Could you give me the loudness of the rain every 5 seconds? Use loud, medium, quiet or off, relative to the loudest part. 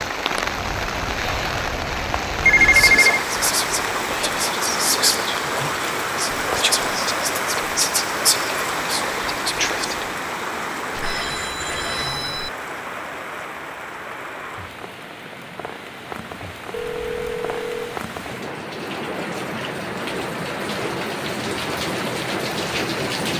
loud, loud, medium, medium, loud.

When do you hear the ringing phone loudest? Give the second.
3 s.